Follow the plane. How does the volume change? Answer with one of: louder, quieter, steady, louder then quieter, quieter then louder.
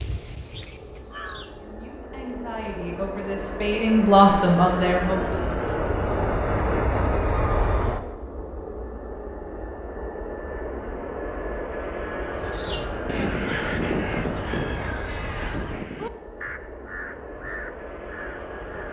louder then quieter.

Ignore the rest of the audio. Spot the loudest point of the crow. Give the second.
14 s.